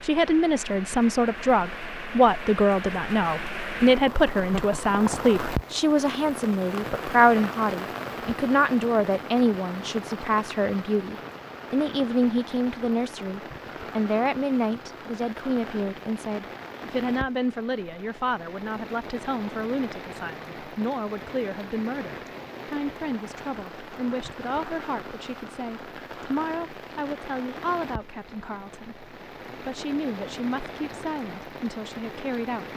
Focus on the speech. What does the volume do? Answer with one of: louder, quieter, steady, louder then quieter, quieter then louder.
quieter.